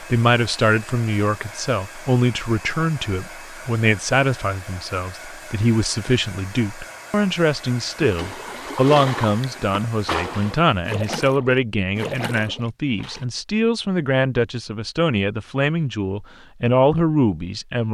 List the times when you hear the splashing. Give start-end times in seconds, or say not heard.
7.9-13.2.